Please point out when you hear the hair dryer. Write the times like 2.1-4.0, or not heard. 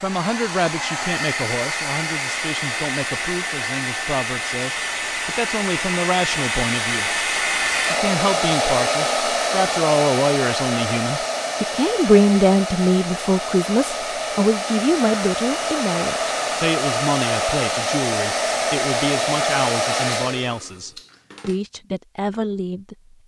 0.0-21.6.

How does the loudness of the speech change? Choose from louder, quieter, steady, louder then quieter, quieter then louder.
louder then quieter.